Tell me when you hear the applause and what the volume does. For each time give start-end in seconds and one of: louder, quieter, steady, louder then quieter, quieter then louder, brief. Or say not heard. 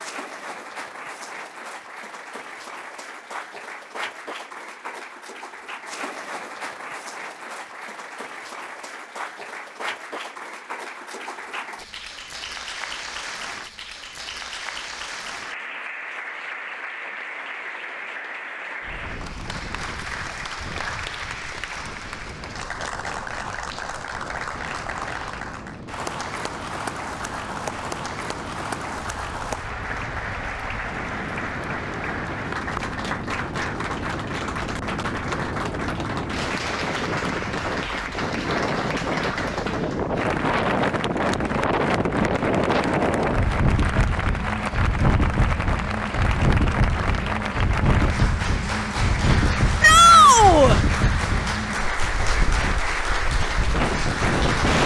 0.0-54.8 louder.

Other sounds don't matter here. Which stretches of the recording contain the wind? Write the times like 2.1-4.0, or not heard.
18.8-54.8.